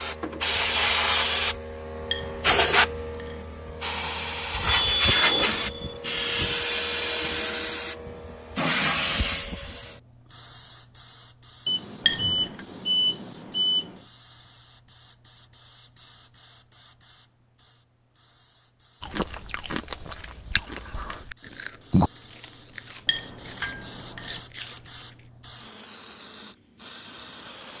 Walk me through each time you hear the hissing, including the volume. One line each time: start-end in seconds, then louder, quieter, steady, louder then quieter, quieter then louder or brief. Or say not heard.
0.0-27.7 quieter then louder.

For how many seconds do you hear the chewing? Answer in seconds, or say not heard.
6 s.